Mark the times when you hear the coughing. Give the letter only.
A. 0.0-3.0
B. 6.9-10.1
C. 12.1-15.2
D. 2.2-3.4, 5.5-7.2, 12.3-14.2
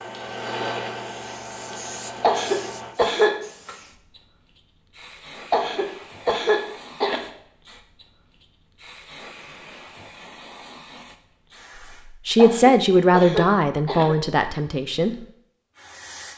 D.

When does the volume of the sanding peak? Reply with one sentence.
The loudest moment of the sanding is at 1 second.